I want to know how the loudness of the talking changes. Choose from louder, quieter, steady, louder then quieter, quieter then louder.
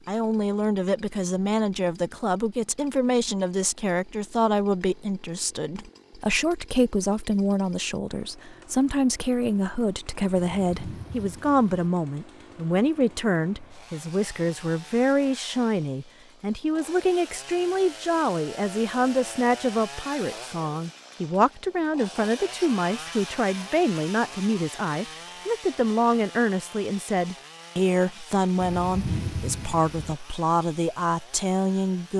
steady.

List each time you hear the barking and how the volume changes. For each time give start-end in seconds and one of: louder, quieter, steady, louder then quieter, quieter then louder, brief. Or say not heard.
not heard.